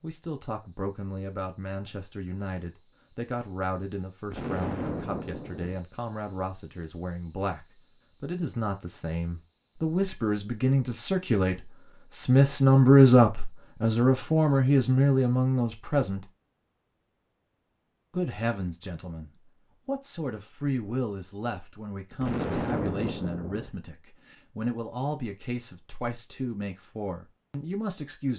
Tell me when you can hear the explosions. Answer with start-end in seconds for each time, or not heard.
4.3-5.8, 22.2-23.7.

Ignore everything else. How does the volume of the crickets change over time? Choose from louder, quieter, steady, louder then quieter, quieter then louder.
louder then quieter.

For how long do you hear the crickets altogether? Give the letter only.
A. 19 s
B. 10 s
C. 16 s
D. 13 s
C.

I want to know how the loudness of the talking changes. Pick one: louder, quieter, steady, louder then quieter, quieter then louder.
louder then quieter.